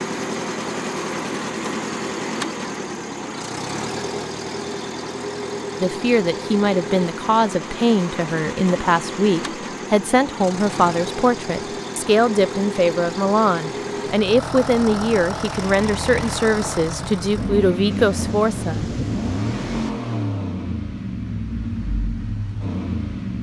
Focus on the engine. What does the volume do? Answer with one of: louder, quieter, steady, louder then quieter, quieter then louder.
steady.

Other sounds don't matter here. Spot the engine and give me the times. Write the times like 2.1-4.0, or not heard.
0.0-23.3.